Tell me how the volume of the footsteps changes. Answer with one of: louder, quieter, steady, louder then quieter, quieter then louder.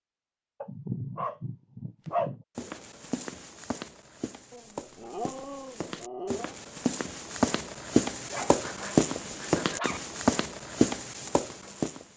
louder.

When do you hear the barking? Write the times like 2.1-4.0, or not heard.
0.6-2.5, 4.5-6.5, 8.2-10.0.